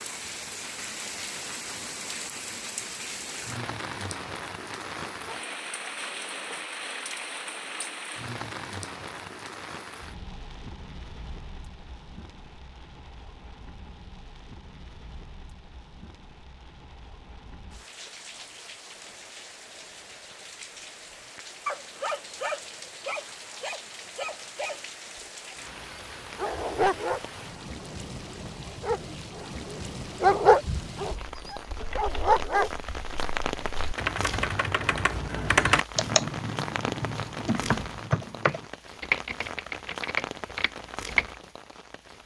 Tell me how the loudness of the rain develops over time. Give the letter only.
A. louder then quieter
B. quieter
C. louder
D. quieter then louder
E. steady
D.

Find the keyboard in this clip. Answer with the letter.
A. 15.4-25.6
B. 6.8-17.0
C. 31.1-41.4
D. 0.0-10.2
C.